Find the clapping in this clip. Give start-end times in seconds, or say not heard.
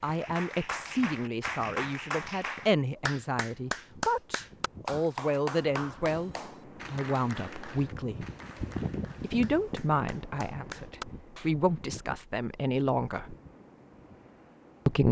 0.0-11.5.